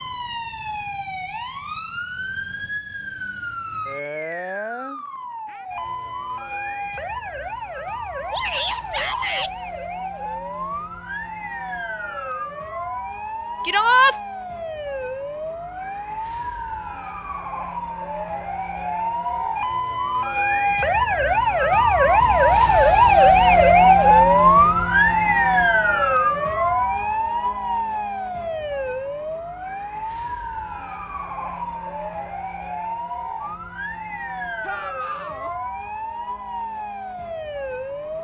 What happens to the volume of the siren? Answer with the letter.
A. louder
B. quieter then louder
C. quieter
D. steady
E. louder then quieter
E.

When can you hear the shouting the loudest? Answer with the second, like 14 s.
14 s.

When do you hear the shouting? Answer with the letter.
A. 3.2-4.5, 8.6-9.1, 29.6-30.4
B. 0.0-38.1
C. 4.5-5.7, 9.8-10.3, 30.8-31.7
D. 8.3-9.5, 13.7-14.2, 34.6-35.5
D.